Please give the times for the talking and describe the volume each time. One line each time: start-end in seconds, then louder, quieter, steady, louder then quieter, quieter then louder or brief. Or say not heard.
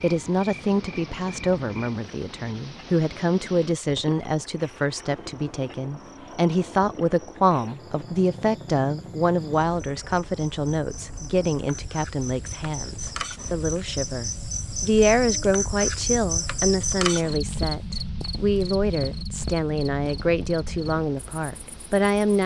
0.0-22.4 steady.